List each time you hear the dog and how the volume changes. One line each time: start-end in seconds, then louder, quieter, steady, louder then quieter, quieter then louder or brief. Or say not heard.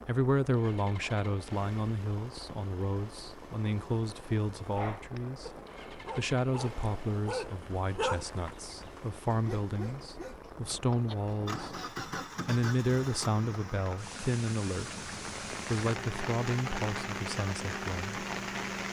4.6-11.2 louder then quieter.